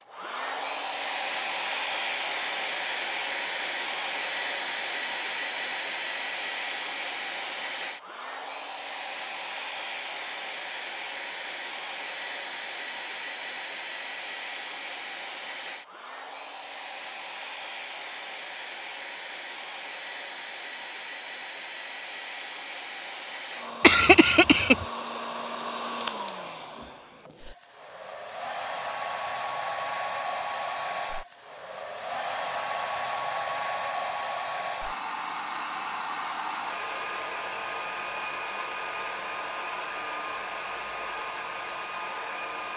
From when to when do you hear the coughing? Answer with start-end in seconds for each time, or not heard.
23.8-24.9.